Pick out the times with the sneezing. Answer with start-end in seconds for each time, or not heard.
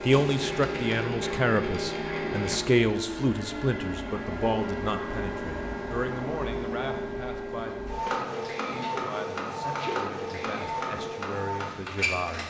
8.7-10.1.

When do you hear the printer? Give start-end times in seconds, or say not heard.
0.0-12.4.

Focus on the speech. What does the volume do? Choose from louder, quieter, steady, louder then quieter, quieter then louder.
quieter.